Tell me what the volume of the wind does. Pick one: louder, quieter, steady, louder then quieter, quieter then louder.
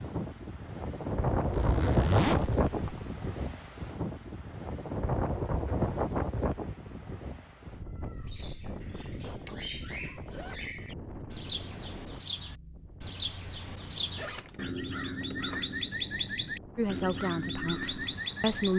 quieter.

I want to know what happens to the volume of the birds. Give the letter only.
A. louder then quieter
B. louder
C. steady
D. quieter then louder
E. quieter
B.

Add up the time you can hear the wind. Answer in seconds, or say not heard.
19 s.